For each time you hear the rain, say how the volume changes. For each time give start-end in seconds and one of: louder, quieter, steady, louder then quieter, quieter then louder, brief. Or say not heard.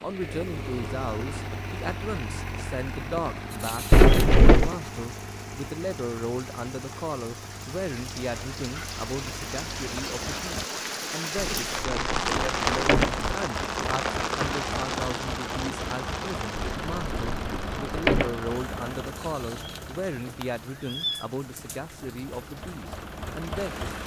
0.0-24.0 louder then quieter.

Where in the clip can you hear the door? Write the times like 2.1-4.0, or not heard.
3.9-4.7, 11.3-13.3, 16.6-18.3.